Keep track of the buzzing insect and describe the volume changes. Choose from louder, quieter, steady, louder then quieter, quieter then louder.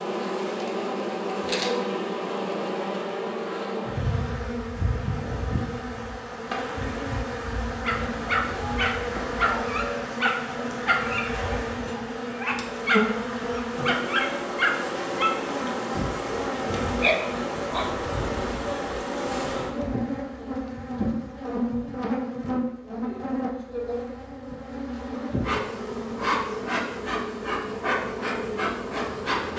steady.